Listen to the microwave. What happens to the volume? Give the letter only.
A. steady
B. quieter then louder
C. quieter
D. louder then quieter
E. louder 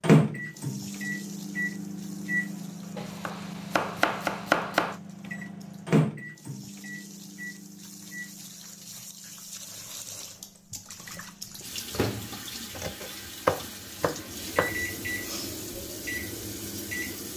B.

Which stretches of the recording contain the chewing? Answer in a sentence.
You can't hear the chewing here.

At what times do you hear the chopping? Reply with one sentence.
The chopping can be heard from 3.0 to 5.0 s and from 12.8 to 14.8 s.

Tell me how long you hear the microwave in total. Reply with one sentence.
The microwave can be heard for 17 seconds in total.